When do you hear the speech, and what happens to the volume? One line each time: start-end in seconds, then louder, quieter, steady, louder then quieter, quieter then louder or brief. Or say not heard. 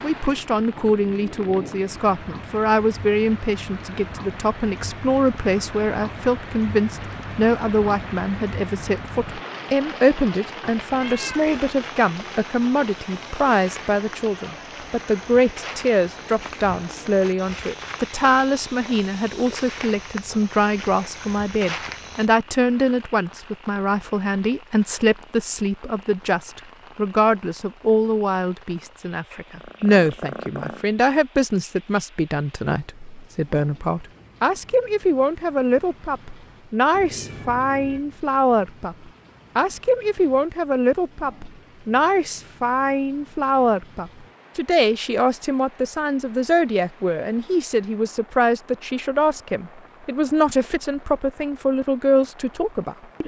0.0-39.0 steady
39.5-53.2 steady.